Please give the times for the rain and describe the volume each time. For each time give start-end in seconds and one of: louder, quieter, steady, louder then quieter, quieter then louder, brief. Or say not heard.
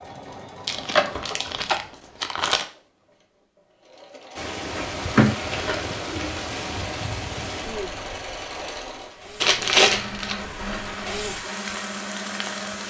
4.3-12.8 quieter then louder.